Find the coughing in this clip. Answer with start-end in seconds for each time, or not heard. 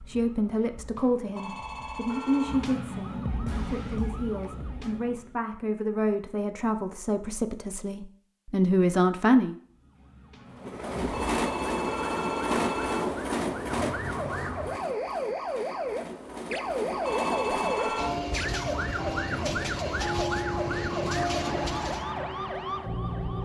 not heard.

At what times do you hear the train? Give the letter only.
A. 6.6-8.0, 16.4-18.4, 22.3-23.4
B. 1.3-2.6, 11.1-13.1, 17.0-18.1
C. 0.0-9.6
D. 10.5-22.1
D.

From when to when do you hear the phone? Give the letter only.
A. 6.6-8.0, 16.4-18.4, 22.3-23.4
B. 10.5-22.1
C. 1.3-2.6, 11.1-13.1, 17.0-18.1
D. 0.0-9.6
C.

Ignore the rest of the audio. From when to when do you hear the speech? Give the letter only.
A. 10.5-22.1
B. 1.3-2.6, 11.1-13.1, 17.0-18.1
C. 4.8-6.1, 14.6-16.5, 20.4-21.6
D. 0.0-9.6
D.